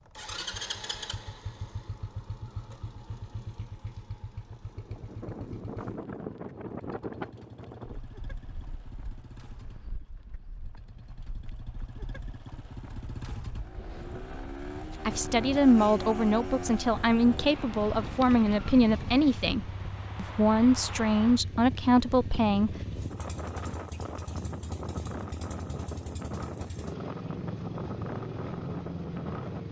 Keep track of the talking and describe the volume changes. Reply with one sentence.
The volume of the talking stays about the same.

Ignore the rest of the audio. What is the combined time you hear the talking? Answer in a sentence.
You can hear the talking for 8 seconds altogether.